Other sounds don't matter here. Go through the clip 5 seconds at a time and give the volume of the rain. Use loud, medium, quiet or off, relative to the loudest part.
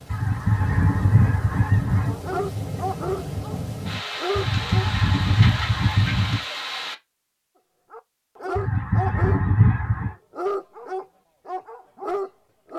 loud, loud, off.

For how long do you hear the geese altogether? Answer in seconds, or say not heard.
6 s.